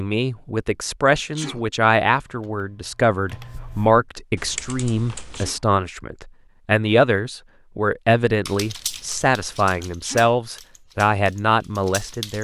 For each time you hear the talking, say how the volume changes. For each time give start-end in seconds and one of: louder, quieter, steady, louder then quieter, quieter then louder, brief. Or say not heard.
0.0-12.3 steady.